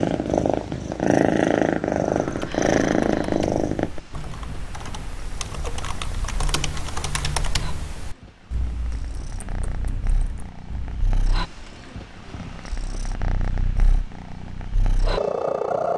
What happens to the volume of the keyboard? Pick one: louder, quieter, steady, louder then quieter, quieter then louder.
louder then quieter.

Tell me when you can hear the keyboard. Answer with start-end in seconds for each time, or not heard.
2.1-11.1.